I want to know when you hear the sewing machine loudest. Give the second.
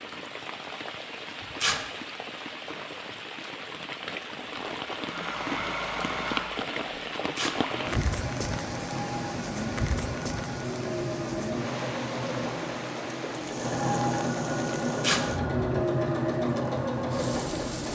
16 s.